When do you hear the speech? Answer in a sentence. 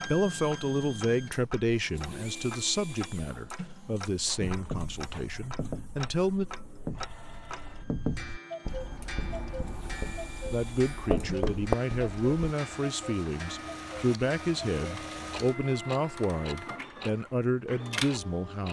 The speech can be heard from 0.1 to 6.5 s and from 10.5 to 18.6 s.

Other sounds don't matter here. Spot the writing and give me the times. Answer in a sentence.
You can hear the writing from 4.4 to 12.3 s.